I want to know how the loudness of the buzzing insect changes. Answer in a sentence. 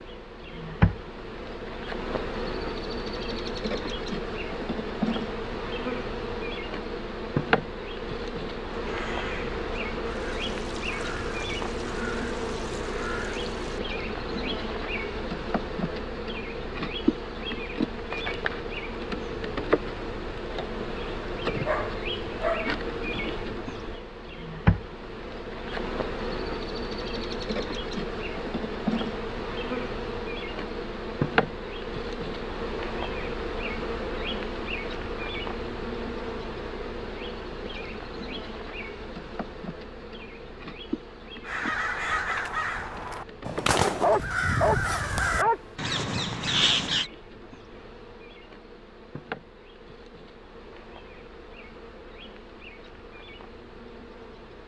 The loudness of the buzzing insect goes down.